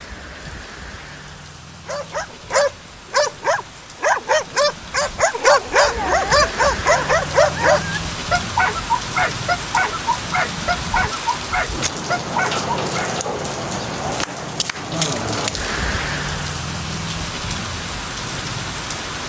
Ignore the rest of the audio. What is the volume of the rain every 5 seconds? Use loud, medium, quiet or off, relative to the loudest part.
quiet, loud, loud, loud.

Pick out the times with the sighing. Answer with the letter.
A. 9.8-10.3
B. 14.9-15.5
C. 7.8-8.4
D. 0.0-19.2
B.